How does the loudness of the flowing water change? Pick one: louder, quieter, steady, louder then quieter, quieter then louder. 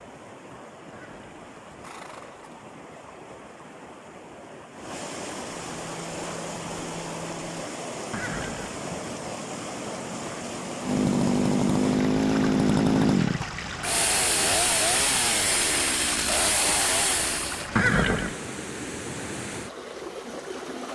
louder.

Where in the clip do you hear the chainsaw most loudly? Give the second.
13 s.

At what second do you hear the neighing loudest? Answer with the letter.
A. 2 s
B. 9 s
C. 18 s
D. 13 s
C.